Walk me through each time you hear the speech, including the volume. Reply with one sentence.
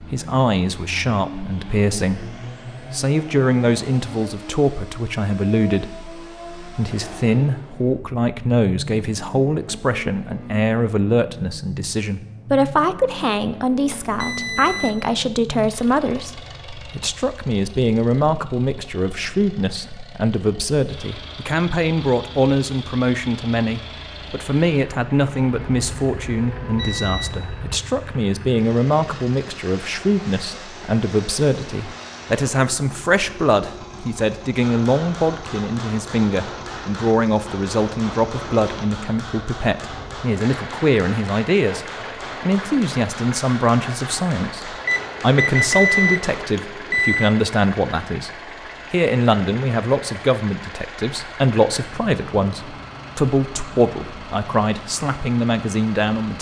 You can hear the speech from 0.0 to 48.3 s, at a steady volume; and from 48.9 to 56.3 s, at a steady volume.